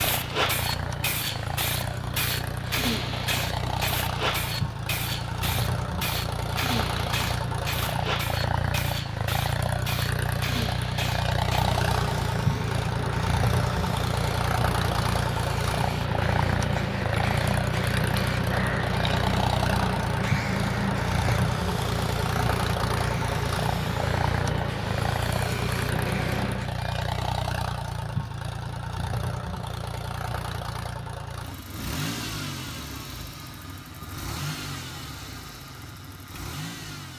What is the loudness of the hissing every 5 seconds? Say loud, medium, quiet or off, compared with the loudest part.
loud, loud, loud, loud, loud, loud, off, off.